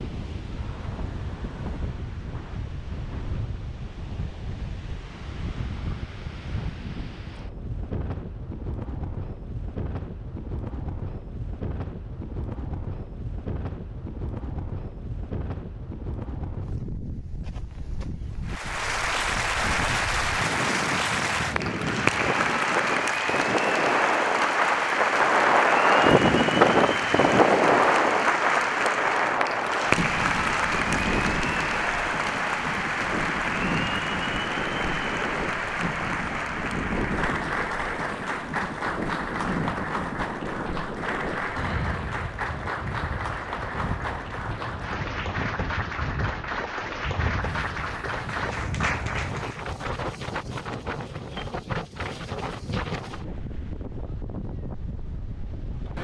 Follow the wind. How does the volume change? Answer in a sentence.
The loudness of the wind goes up, then down.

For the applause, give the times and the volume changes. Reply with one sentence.
The applause can be heard from 18.4 to 49.6 s, getting quieter.